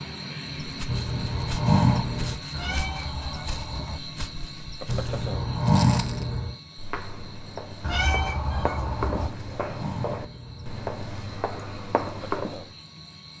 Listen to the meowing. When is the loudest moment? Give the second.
8 s.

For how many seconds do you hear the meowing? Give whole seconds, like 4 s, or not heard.
3 s.